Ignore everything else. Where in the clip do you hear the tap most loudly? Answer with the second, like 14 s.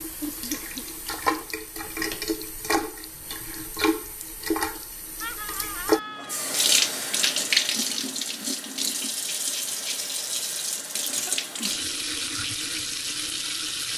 7 s.